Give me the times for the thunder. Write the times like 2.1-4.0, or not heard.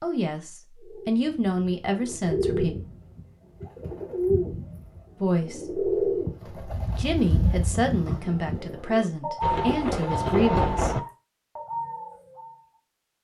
9.4-11.0.